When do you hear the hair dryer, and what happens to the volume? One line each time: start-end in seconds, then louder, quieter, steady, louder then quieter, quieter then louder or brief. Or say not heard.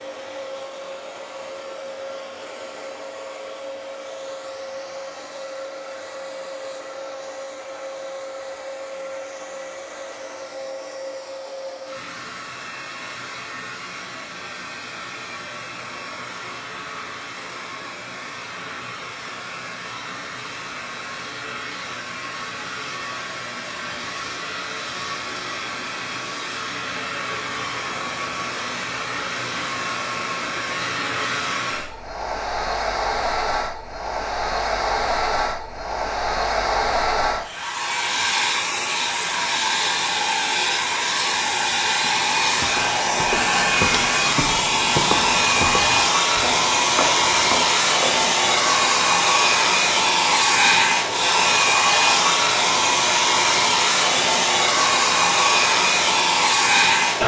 0.0-57.2 louder.